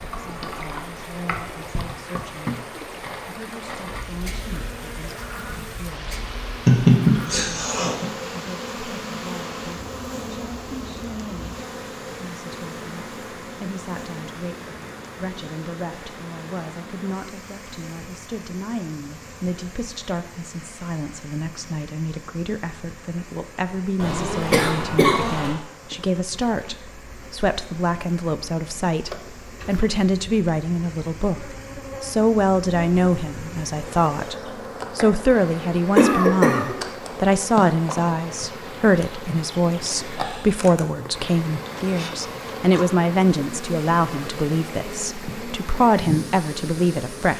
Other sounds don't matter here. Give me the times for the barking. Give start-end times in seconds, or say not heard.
not heard.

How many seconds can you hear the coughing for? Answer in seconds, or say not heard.
4 s.